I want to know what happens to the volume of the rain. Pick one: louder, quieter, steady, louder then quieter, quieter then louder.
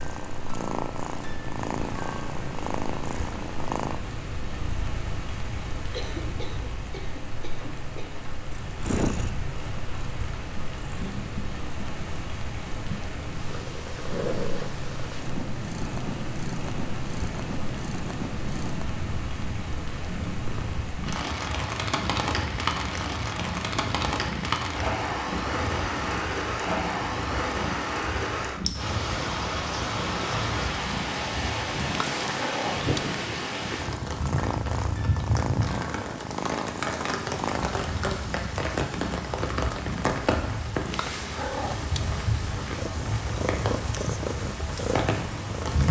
louder.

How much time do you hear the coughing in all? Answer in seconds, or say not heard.
2 s.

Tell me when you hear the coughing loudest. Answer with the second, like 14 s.
6 s.